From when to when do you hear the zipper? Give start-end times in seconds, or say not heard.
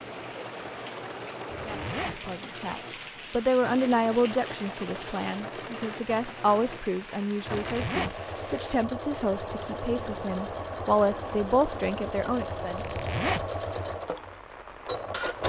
1.5-2.2, 7.6-8.2, 12.8-13.5.